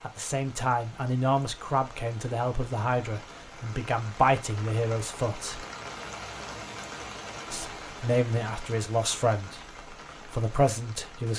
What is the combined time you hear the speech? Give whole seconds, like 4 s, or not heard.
9 s.